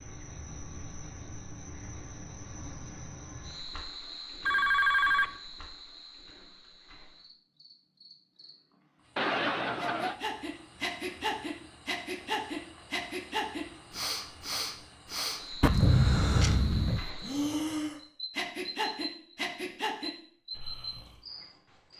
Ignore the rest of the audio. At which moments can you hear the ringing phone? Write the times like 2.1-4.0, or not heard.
4.5-5.3, 9.2-10.2, 15.6-17.0.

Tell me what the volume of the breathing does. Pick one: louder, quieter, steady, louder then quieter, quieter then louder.
steady.